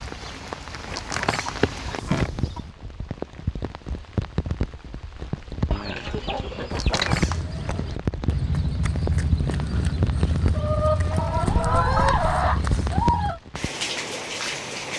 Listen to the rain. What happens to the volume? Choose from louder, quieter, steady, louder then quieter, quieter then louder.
steady.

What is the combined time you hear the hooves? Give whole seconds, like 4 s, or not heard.
6 s.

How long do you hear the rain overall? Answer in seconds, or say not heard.
15 s.